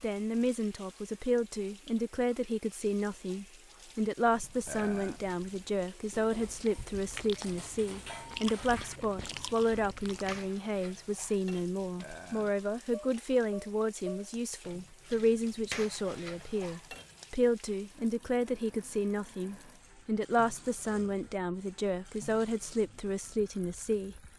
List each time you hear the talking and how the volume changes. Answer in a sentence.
You can hear the talking from 0.0 to 24.2 s, at a steady volume.